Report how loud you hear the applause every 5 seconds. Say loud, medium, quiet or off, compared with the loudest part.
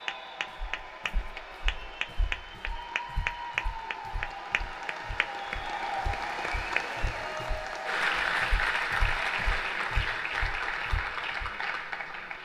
medium, loud, loud.